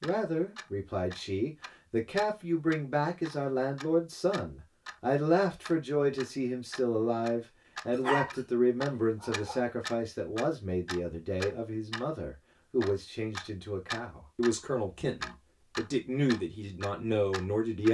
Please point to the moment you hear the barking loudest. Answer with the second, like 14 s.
8 s.